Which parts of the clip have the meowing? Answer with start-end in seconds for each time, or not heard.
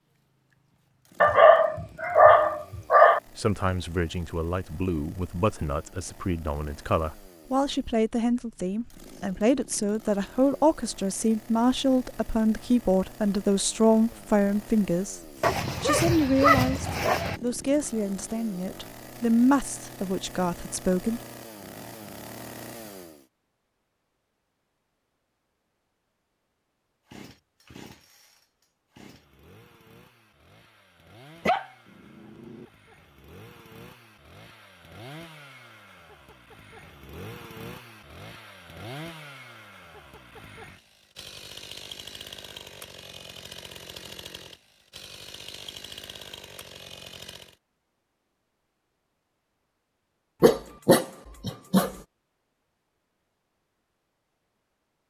not heard.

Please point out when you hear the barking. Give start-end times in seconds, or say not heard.
1.2-3.2, 15.4-17.4, 31.4-32.6, 50.4-51.9.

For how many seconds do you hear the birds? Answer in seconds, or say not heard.
not heard.